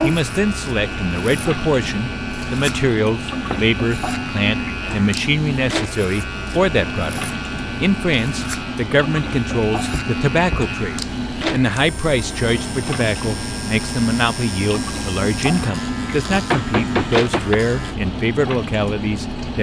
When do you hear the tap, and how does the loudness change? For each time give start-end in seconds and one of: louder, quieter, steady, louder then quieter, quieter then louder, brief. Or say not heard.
0.0-19.5 steady.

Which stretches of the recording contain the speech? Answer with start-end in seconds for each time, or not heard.
0.0-19.5.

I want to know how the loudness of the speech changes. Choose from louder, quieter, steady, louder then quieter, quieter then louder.
steady.